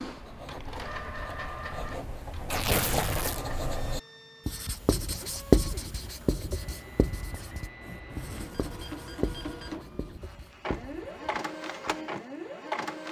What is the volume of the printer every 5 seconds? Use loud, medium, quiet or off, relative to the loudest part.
medium, medium, loud.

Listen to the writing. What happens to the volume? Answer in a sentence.
The loudness of the writing goes up, then down.